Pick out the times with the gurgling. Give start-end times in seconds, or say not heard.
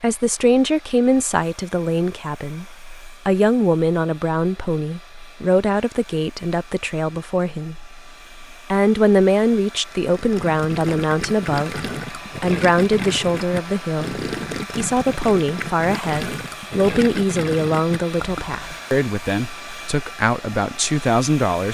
10.1-18.8.